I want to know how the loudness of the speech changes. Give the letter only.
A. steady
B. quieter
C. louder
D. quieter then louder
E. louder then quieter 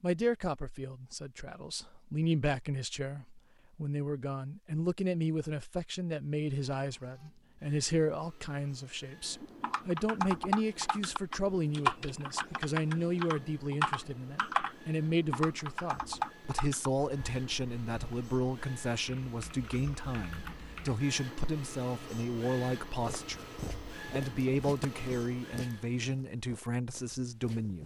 A.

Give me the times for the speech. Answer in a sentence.
The speech can be heard from 0.0 to 27.8 s.